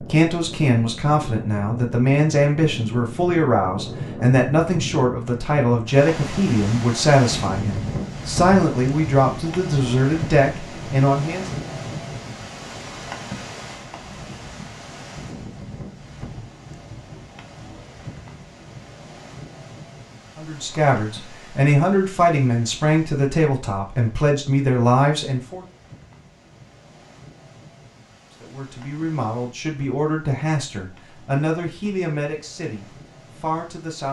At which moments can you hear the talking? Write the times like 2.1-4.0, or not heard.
0.0-11.6, 20.4-25.6, 28.3-34.0.